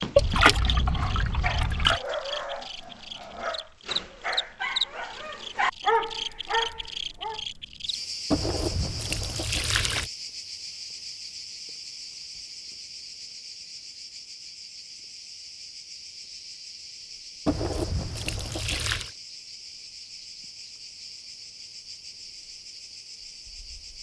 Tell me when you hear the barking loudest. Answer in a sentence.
The loudest moment of the barking is at 6 seconds.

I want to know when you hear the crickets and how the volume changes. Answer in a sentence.
The crickets can be heard from 0.1 to 23.9 s, getting quieter.